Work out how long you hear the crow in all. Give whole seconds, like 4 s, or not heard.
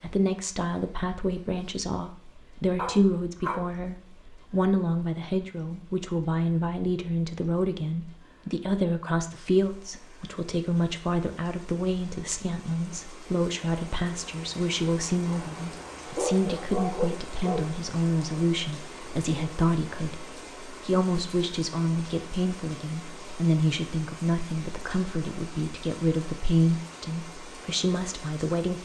not heard.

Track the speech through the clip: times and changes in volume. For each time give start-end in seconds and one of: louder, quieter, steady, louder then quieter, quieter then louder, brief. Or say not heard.
0.0-28.8 steady.